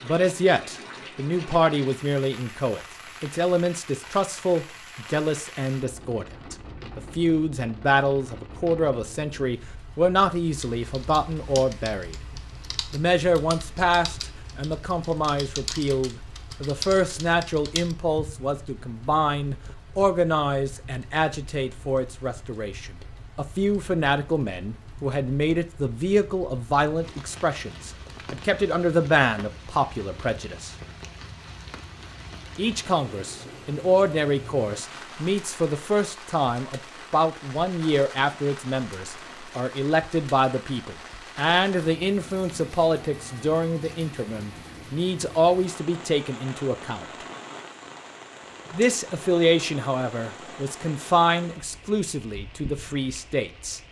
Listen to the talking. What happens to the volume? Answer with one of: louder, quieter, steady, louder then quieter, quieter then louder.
steady.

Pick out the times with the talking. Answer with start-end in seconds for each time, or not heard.
0.0-12.2, 12.9-30.7, 32.5-47.2, 48.7-53.8.